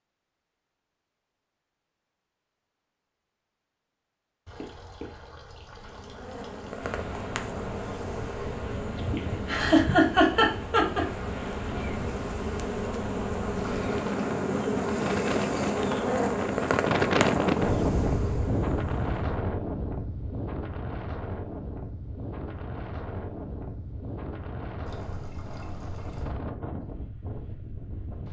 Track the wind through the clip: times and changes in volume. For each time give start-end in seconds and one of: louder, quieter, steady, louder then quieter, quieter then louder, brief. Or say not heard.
6.8-28.2 louder then quieter.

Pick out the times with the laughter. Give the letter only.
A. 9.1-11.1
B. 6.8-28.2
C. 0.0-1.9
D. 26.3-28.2
A.